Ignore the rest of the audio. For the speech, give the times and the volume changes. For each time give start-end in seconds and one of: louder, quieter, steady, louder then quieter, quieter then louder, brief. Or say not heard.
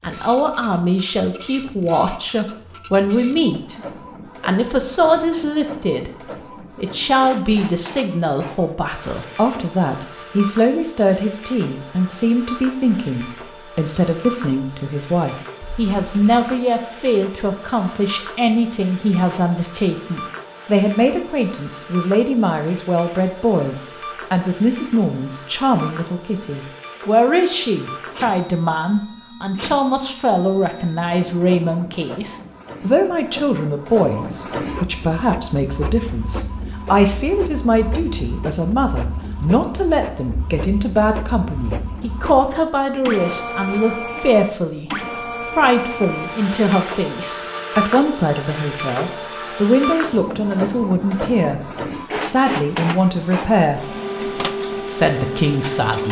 0.0-56.0 steady.